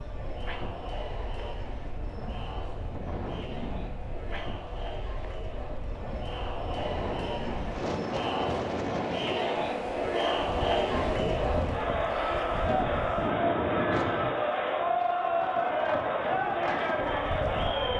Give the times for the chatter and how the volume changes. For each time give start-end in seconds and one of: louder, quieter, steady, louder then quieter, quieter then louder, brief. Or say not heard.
0.0-17.9 louder.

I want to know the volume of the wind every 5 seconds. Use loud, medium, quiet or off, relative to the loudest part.
medium, loud, loud, loud.